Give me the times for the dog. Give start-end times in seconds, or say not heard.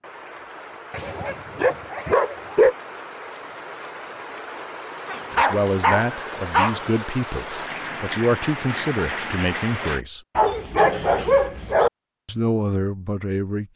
0.9-2.8, 5.0-6.8, 10.3-11.9.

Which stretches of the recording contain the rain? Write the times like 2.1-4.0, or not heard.
0.0-10.1.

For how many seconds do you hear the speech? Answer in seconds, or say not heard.
6 s.